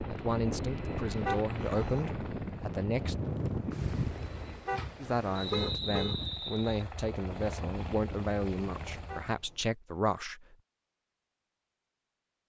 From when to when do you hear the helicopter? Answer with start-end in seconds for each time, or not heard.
0.0-4.8, 6.2-9.3.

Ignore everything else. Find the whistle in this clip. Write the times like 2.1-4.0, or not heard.
5.3-6.8.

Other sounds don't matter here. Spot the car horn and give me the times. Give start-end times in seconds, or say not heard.
1.2-2.1, 4.7-6.2, 9.1-9.7.